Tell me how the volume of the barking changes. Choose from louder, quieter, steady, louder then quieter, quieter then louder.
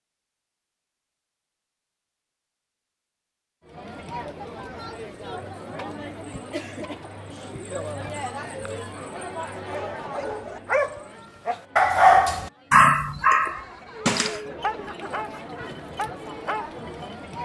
louder then quieter.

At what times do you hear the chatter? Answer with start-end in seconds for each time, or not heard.
3.6-17.4.